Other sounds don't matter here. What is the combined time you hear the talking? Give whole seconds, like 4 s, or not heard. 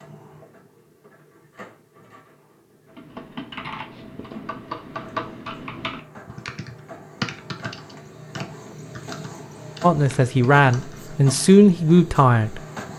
3 s.